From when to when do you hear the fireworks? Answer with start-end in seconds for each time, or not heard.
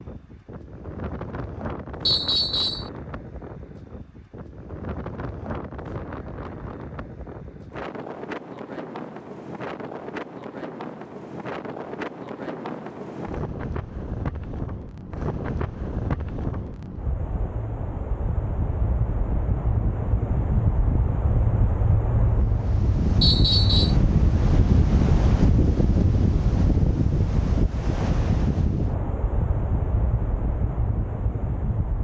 not heard.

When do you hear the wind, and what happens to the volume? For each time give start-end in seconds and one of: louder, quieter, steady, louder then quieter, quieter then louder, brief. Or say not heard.
0.0-32.0 louder.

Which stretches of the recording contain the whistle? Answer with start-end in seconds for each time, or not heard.
2.0-2.9, 23.2-23.9.